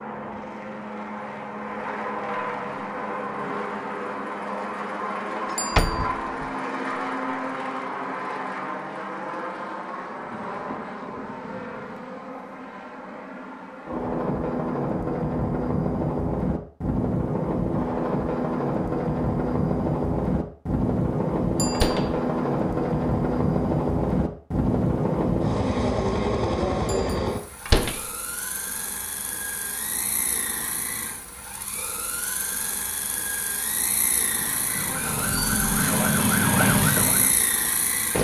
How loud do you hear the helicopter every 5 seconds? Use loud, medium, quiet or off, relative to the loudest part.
medium, medium, medium, loud, loud, loud, medium, medium.